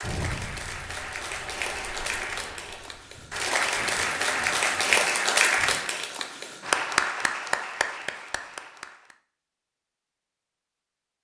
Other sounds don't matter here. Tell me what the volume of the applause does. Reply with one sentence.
The loudness of the applause goes up, then down.